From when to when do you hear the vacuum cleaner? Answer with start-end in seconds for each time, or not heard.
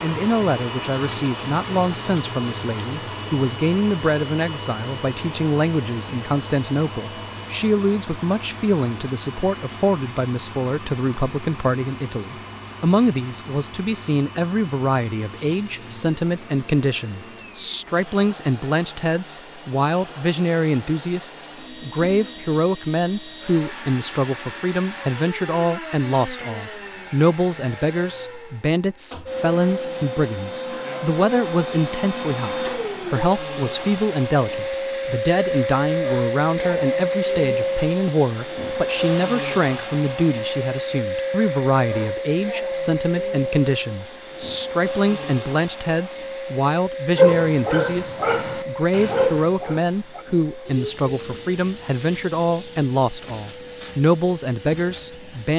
0.0-55.5.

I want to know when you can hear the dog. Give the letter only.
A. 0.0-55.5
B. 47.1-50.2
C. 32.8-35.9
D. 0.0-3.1
B.